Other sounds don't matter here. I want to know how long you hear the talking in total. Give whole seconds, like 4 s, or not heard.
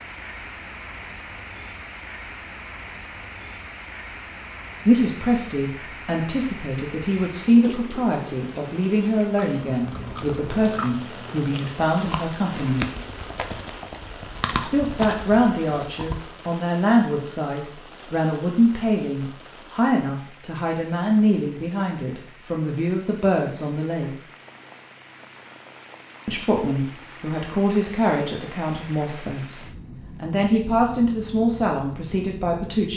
24 s.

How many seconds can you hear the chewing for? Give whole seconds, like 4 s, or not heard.
7 s.